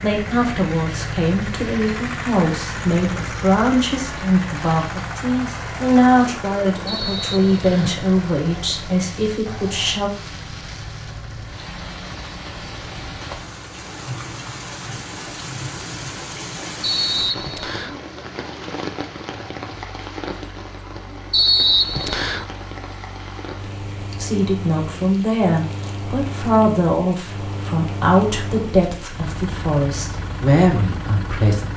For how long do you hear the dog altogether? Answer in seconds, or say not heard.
not heard.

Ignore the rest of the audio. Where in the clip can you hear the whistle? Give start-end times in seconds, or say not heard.
6.8-8.0, 16.8-17.9, 21.3-22.4.